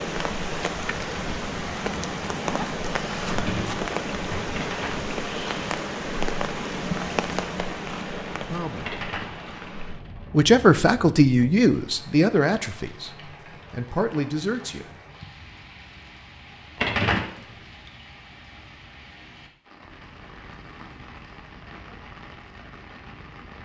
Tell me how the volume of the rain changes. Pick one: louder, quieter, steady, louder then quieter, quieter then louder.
quieter.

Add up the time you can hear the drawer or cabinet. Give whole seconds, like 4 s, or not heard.
2 s.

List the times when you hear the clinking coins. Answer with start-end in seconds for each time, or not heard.
4.5-5.1, 8.8-9.5, 16.8-17.4.